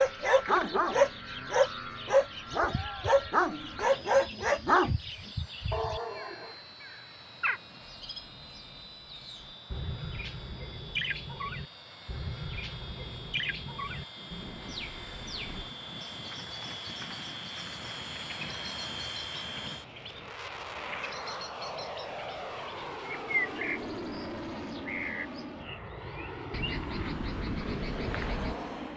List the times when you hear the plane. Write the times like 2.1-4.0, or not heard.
0.0-28.9.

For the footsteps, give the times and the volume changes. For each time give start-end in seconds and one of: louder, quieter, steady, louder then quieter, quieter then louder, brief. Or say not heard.
not heard.